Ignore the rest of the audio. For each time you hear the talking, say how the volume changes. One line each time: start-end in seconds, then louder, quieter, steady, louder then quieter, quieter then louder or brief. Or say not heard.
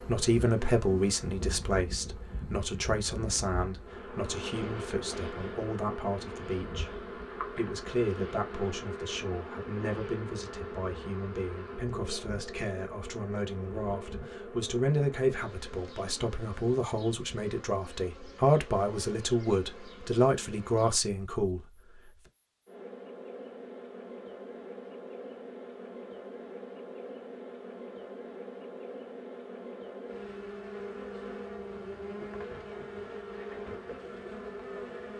0.0-21.6 quieter then louder.